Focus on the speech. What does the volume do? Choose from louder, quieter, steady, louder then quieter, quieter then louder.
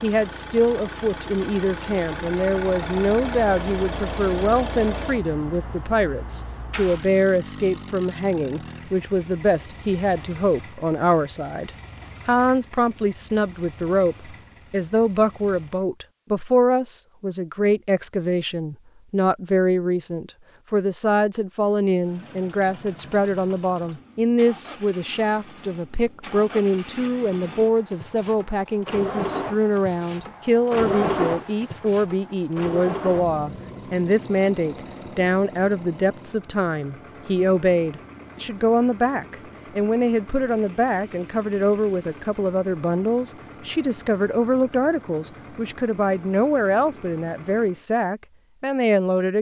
steady.